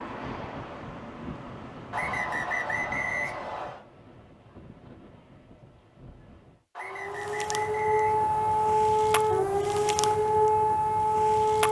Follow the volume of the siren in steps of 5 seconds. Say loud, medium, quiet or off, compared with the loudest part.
off, loud, loud.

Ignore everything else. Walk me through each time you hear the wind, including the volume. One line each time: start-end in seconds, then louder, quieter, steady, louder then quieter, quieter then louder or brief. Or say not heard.
0.0-6.7 quieter.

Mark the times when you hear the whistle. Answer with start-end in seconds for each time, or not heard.
1.9-3.8, 6.8-8.8.